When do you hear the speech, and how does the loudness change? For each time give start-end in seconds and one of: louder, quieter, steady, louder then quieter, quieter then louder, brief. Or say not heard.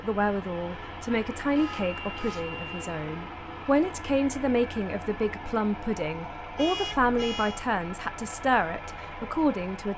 0.0-9.9 steady.